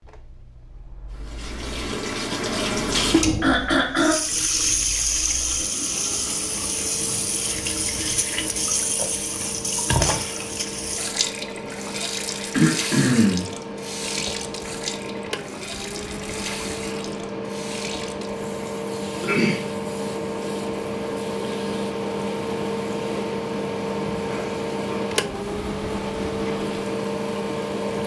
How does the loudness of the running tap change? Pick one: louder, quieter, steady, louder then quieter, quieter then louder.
quieter.